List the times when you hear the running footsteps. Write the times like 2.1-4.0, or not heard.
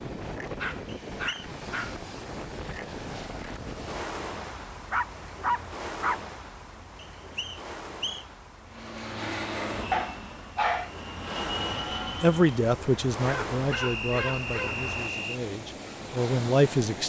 not heard.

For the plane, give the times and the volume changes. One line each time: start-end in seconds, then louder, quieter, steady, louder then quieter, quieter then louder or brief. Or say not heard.
8.7-12.7 quieter then louder.